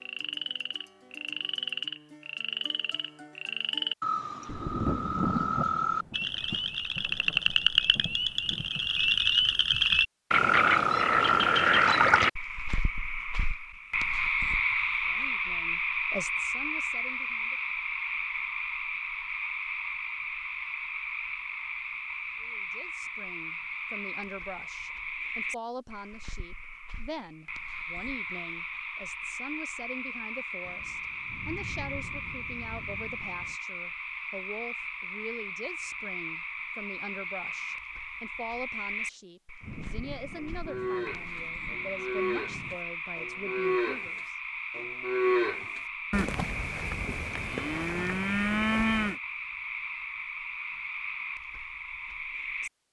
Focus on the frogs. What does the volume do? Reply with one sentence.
The volume of the frogs goes down.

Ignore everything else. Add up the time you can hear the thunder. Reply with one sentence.
You can hear the thunder for 11 seconds altogether.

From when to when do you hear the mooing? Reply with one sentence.
The mooing can be heard from 40.4 to 49.2 s.